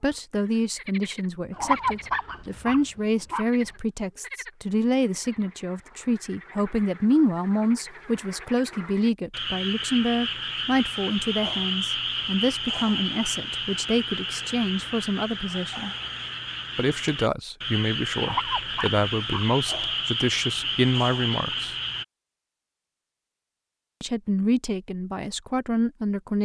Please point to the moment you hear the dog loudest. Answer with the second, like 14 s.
2 s.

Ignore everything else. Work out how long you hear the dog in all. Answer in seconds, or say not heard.
3 s.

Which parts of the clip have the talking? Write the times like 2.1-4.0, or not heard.
0.0-15.9, 16.8-21.8, 24.0-26.4.